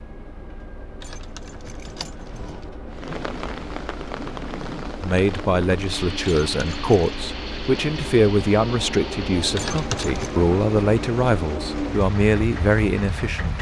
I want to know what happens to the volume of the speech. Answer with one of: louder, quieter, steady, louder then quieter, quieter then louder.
steady.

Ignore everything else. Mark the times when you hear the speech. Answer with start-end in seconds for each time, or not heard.
5.0-13.5.